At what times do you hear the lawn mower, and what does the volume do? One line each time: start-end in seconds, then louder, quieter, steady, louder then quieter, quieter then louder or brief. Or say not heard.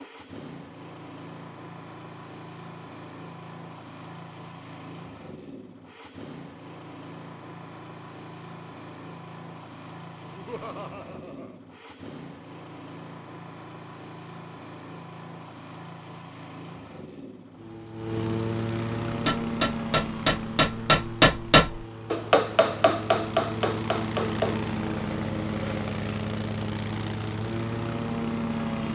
0.0-28.9 louder.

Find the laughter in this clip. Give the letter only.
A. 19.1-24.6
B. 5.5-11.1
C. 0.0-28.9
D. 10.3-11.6
D.